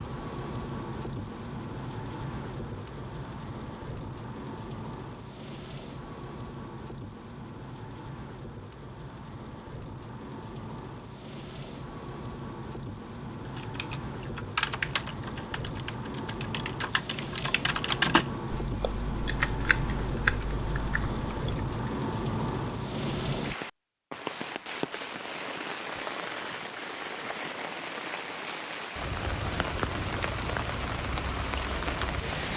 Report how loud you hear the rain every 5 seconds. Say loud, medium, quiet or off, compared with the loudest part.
medium, medium, medium, loud, loud, loud, loud.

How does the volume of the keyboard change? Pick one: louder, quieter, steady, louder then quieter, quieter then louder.
quieter then louder.